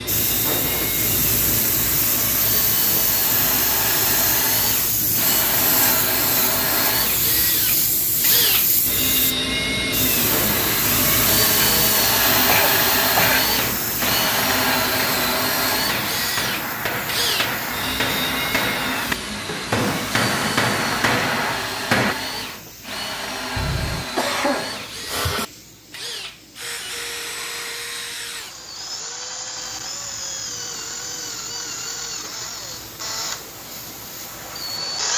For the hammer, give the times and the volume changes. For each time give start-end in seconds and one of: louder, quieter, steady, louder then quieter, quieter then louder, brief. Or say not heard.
13.4-22.1 louder.